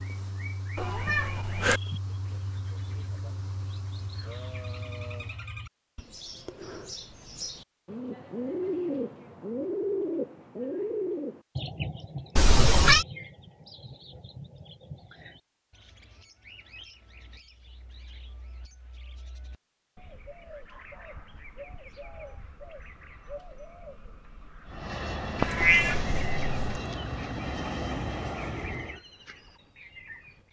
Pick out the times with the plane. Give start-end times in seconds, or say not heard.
0.0-5.5, 24.6-29.0.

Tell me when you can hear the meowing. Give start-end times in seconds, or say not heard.
0.8-1.8, 12.3-13.1, 25.4-26.8.